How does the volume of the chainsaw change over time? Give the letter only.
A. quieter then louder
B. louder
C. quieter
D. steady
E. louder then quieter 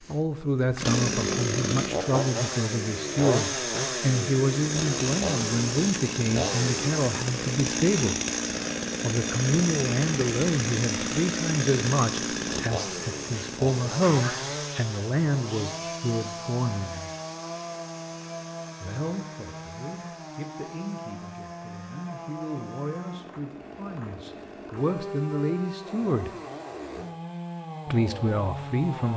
C.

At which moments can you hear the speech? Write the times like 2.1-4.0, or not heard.
0.1-8.2, 9.0-17.1, 18.8-26.3, 27.9-29.1.